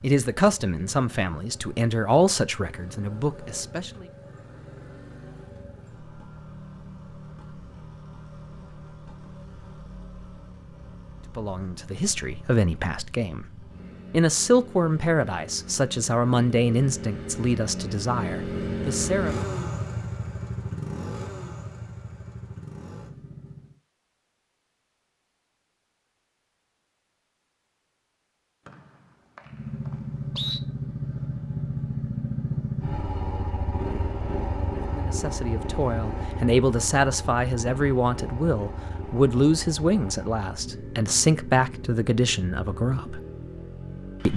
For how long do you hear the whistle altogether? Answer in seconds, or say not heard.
2 s.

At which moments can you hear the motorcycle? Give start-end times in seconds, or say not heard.
0.0-23.8, 29.4-44.3.